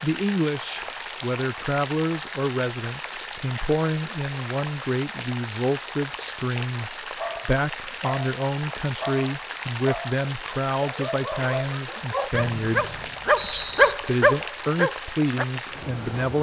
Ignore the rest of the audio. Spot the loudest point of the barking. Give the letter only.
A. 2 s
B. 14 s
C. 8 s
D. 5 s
B.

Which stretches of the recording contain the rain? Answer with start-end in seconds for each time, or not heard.
0.0-16.3.